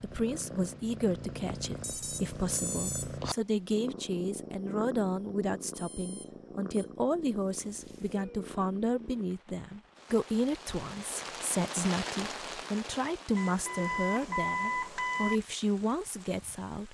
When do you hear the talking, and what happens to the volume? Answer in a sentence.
You can hear the talking from 0.0 to 16.8 s, at a steady volume.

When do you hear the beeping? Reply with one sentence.
The beeping can be heard from 1.8 to 3.1 s, from 5.7 to 6.9 s and from 13.3 to 15.4 s.